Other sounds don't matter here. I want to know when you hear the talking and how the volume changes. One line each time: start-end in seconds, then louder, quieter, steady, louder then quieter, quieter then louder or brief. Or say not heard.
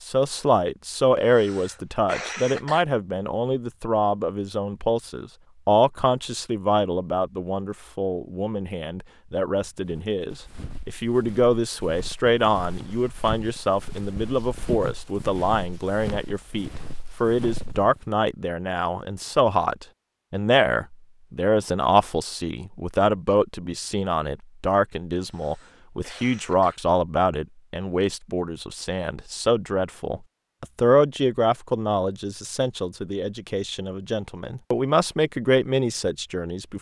0.0-36.7 steady.